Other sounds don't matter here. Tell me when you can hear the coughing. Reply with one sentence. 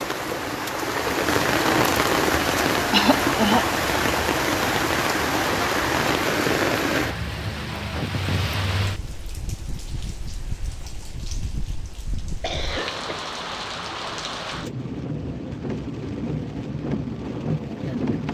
The coughing can be heard from 2.9 to 3.6 s and from 12.4 to 13.2 s.